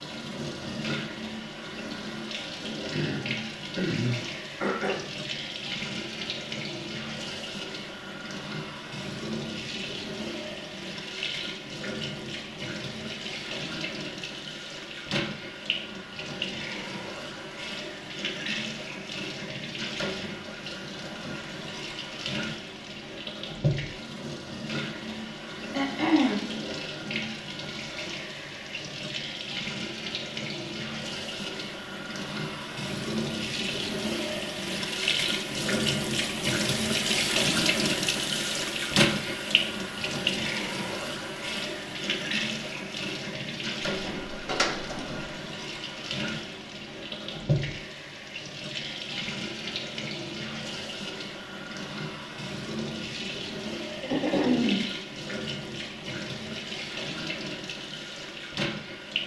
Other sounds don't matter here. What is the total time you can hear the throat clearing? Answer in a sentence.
The throat clearing can be heard for 4 seconds in total.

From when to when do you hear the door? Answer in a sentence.
The door can be heard from 43.9 to 45.5 s.